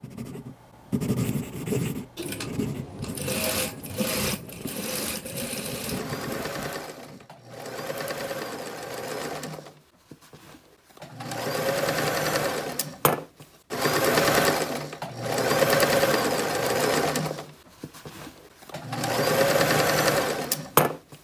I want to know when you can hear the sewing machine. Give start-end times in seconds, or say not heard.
2.1-21.1.